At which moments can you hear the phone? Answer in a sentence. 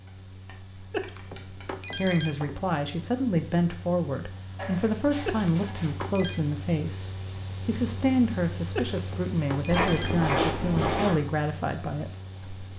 The phone can be heard from 0.9 to 2.6 s, from 5.2 to 6.4 s and from 8.8 to 10.3 s.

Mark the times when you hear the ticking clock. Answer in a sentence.
The ticking clock can't be heard in this clip.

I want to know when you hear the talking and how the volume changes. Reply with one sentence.
You can hear the talking from 1.9 to 12.7 s, at a steady volume.